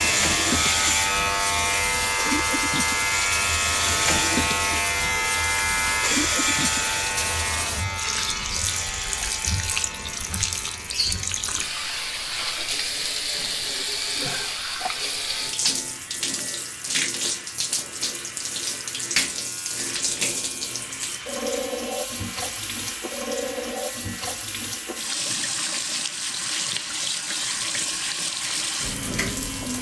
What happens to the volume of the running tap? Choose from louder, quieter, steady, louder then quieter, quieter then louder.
steady.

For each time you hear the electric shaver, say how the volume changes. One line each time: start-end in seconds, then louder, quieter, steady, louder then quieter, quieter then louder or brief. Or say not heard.
0.0-29.7 quieter.